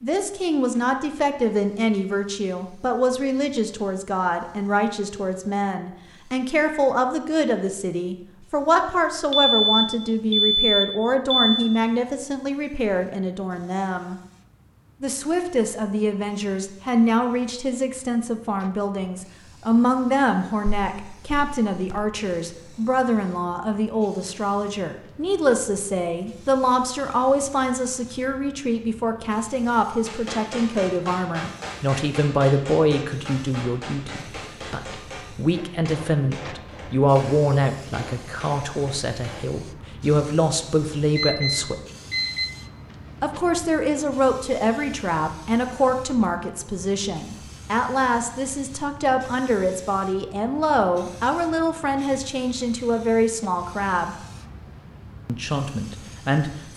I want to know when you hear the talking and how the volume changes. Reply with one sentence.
The talking can be heard from 0.0 to 14.2 s, at a steady volume; from 15.0 to 41.8 s, at a steady volume; from 43.2 to 54.2 s, at a steady volume; and briefly from 55.2 to 56.7 s.